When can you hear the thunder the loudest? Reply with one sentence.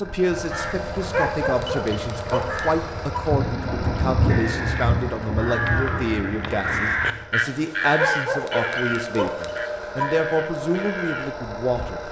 The volume of the thunder peaks at 4 seconds.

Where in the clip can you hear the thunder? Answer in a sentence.
You can hear the thunder from 3.2 to 7.2 s.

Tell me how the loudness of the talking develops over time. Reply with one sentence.
The loudness of the talking stays about the same.